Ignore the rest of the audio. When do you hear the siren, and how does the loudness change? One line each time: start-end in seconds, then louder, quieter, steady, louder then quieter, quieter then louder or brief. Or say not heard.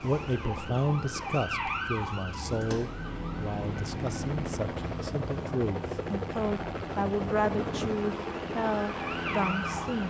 0.0-10.0 quieter then louder.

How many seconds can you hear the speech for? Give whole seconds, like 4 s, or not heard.
10 s.